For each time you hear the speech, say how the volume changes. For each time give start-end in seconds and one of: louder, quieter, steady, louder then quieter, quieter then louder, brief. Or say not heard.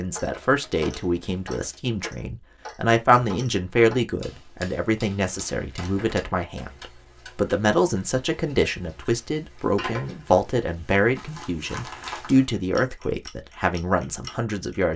0.0-14.9 steady.